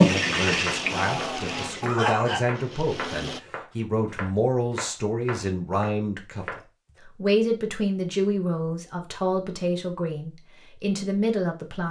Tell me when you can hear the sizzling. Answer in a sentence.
The sizzling can be heard from 0.0 to 1.9 s.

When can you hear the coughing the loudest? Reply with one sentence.
The volume of the coughing peaks at 2 seconds.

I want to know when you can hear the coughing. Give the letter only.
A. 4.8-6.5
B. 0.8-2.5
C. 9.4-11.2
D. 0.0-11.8
B.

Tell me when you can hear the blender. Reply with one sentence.
The blender can be heard from 0.1 to 3.4 s.